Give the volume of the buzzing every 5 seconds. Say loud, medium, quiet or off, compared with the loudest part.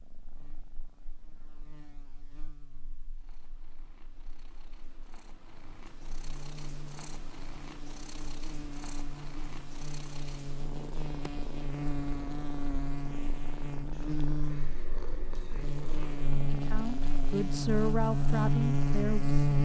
quiet, quiet, medium, loud.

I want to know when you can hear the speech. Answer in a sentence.
You can hear the speech from 16.5 to 19.4 s.